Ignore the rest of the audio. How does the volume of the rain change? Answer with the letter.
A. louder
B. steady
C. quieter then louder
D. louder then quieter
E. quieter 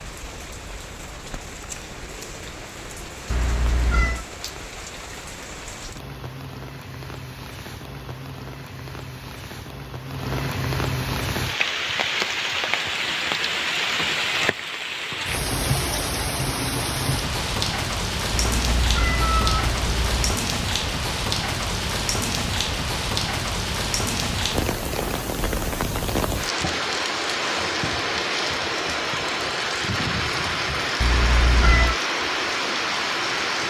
A.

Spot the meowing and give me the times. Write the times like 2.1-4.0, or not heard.
3.3-4.2, 18.3-20.4, 31.0-31.9.